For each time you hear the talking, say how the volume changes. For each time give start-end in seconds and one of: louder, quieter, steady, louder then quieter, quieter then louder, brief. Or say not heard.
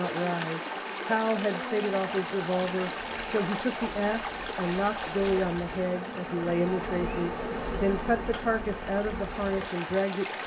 0.0-10.4 steady.